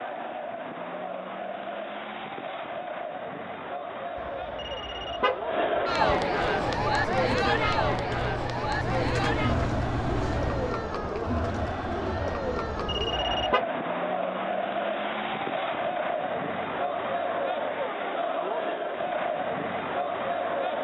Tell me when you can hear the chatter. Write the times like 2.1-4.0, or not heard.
0.0-20.7.